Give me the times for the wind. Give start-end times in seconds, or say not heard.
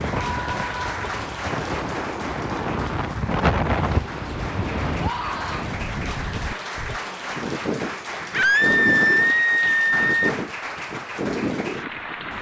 0.0-12.3.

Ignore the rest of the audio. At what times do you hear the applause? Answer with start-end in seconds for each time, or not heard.
0.0-12.3.